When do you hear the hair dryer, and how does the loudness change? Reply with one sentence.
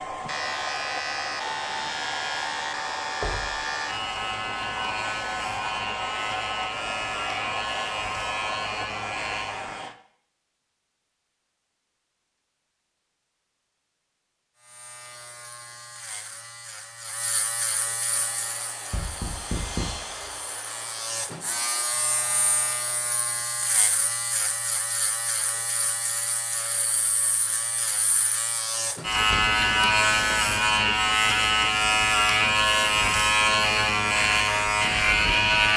You can hear the hair dryer from 0.0 to 9.9 s, at a steady volume; and from 18.1 to 22.6 s, getting louder then quieter.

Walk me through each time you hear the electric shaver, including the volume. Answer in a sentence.
You can hear the electric shaver from 0.0 to 9.9 s, at a steady volume; and from 14.6 to 35.7 s, getting louder.